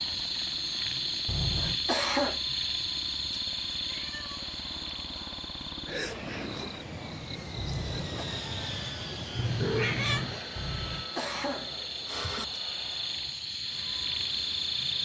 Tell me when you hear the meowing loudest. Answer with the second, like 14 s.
10 s.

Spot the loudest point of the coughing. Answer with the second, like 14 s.
2 s.